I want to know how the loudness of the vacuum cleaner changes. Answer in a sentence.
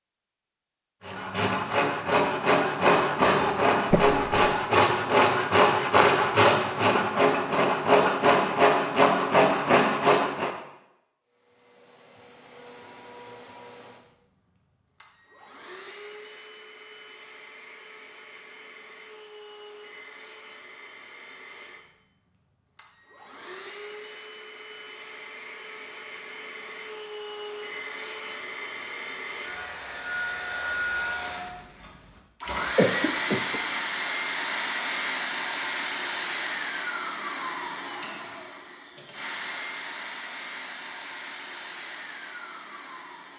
The volume of the vacuum cleaner goes up, then down.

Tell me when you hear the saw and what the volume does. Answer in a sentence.
You can hear the saw from 1.1 to 10.6 s, at a steady volume.